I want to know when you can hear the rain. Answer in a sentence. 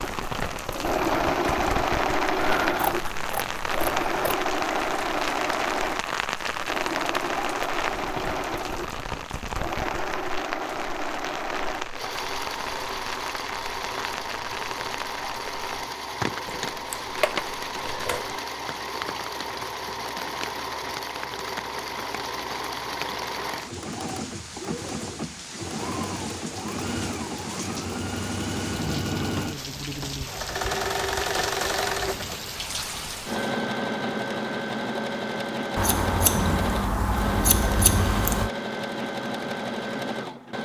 The rain can be heard from 0.0 to 33.6 s.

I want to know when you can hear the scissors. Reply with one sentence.
The scissors can be heard from 2.4 to 4.3 s, from 16.8 to 18.4 s and from 35.8 to 38.5 s.